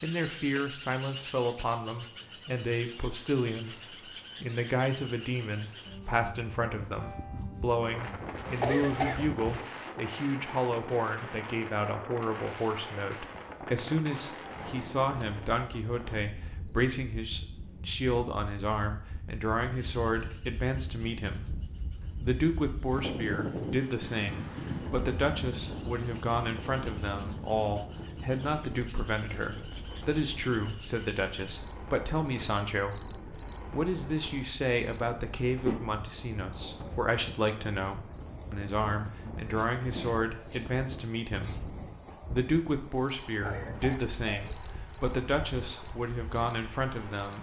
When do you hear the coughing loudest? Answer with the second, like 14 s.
9 s.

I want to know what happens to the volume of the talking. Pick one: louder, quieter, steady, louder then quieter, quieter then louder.
steady.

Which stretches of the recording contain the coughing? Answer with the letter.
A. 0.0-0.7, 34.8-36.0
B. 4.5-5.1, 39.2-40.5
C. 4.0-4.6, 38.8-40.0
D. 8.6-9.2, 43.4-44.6
D.